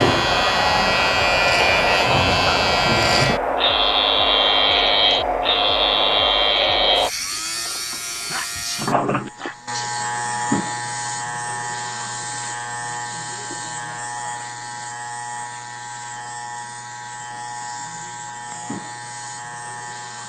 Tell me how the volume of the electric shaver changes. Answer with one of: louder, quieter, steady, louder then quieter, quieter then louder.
quieter.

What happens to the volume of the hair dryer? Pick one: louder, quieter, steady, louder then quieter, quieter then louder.
steady.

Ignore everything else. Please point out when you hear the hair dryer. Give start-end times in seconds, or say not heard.
0.0-7.1.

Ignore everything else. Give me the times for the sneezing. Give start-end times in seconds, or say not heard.
8.1-9.9.